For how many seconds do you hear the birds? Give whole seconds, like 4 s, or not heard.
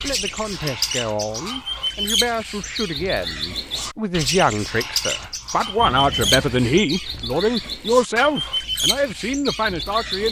10 s.